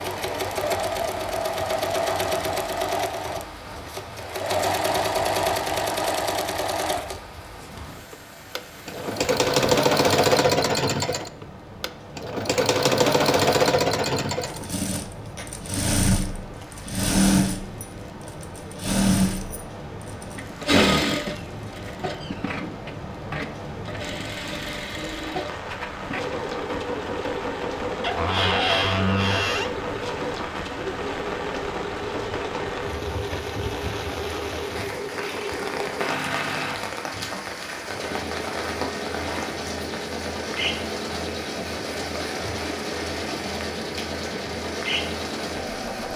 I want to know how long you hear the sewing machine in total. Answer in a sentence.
You can hear the sewing machine for 46 seconds altogether.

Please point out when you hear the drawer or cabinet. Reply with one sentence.
You can hear the drawer or cabinet from 28.0 to 29.8 s.